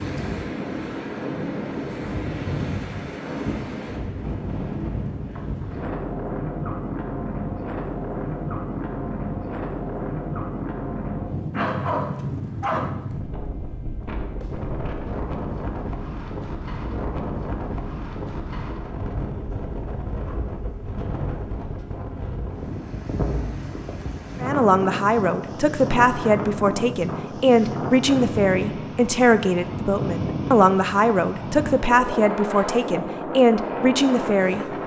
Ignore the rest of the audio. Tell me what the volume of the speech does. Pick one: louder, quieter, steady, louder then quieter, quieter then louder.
steady.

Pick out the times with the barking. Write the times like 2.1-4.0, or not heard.
11.5-12.9.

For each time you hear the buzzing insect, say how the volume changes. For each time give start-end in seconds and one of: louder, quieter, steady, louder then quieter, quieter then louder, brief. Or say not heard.
not heard.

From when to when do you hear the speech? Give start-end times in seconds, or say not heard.
24.4-34.6.